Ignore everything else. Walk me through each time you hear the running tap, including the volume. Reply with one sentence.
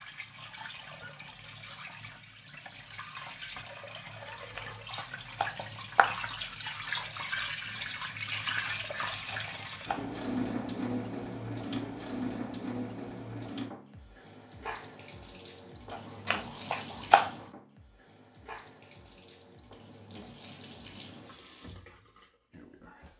The running tap can be heard from 0.0 to 23.1 s, getting louder then quieter.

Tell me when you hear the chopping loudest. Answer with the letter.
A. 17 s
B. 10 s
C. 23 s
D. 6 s
A.